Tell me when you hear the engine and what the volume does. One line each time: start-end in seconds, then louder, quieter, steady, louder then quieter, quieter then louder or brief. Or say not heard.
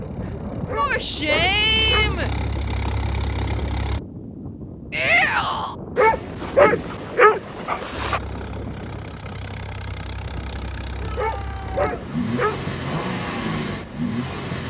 0.0-4.0 louder
8.0-14.6 louder.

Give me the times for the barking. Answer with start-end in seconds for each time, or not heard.
0.7-2.1, 6.0-8.2, 11.2-12.7.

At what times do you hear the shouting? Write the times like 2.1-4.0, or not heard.
0.8-2.3, 4.9-5.8, 11.0-11.8.